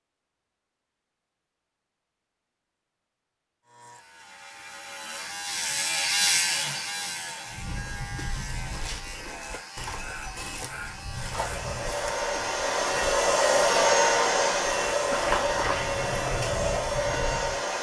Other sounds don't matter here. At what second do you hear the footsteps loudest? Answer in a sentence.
The volume of the footsteps peaks at 15 seconds.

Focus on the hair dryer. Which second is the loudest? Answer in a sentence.
The volume of the hair dryer peaks at 14 seconds.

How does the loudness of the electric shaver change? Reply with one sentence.
The volume of the electric shaver goes up, then down.